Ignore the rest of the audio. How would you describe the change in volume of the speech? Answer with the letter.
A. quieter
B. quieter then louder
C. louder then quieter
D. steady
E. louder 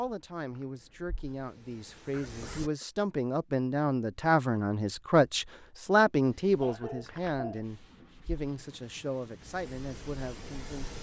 C.